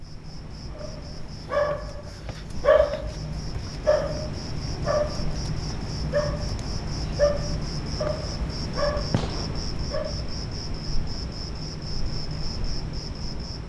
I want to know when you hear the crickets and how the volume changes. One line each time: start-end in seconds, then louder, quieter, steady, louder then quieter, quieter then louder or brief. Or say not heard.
0.0-13.6 louder.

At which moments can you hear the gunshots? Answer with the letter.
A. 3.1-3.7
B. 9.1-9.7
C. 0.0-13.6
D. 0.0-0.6
B.